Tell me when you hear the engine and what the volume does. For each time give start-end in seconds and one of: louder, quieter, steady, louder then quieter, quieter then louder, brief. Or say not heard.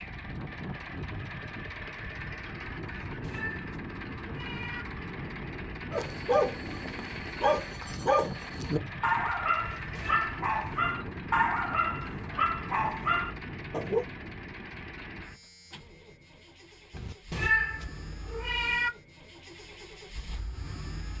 0.0-21.1 quieter.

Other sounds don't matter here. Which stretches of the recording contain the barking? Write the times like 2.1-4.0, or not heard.
5.9-14.1.